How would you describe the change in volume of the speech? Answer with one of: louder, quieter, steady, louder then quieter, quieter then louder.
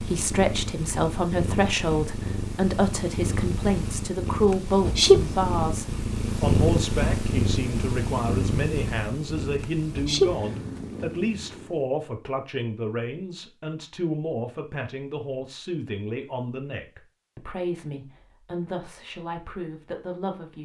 quieter.